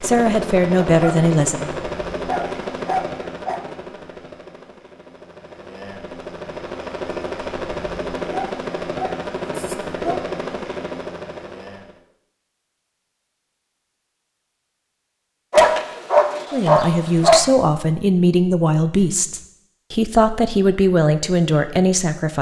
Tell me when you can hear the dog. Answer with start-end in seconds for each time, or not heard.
0.9-3.6, 8.3-10.3, 15.5-17.4.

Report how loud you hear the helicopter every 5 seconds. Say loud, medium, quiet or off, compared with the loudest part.
loud, loud, loud, off, off.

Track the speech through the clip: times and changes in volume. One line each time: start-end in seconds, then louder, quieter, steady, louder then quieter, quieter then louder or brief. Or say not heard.
0.0-1.7 brief
16.5-22.3 steady.